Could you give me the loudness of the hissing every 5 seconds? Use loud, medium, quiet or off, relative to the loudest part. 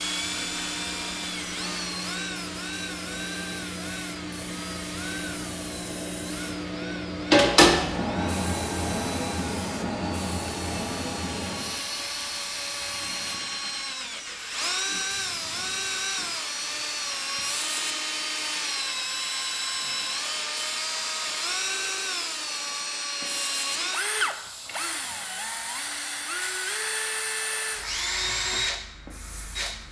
quiet, loud, medium, quiet, quiet, quiet.